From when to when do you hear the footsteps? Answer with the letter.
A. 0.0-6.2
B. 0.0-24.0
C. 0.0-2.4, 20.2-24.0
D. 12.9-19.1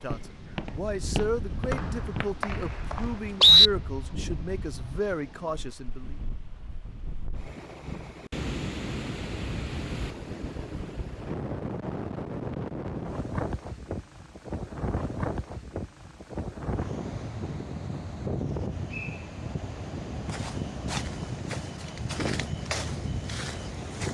C.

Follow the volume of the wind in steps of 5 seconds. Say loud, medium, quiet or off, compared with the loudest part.
medium, loud, loud, loud, loud.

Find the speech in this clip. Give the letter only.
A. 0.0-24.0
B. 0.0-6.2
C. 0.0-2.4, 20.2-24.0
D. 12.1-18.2
B.